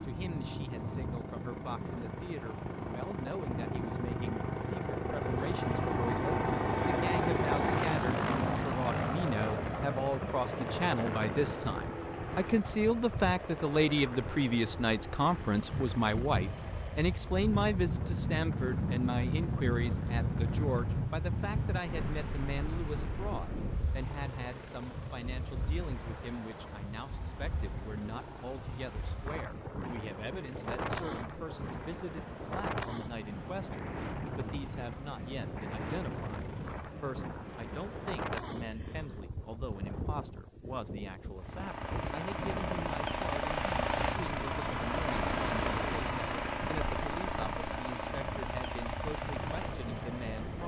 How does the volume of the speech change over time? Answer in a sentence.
The loudness of the speech goes up, then down.